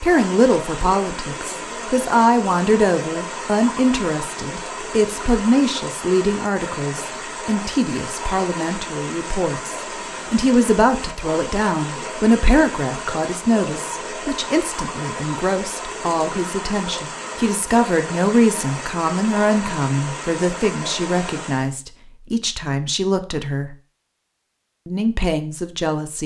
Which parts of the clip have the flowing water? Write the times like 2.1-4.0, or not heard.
0.0-21.7.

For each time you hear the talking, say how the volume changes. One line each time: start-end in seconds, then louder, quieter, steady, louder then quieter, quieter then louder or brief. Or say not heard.
0.0-23.8 steady
24.9-26.2 brief.